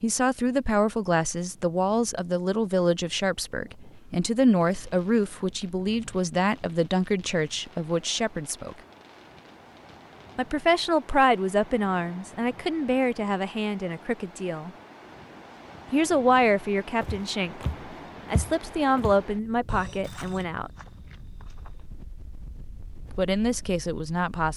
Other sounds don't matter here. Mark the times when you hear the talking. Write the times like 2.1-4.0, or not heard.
0.0-8.8, 10.3-14.7, 15.9-17.6, 18.3-20.7, 23.1-24.5.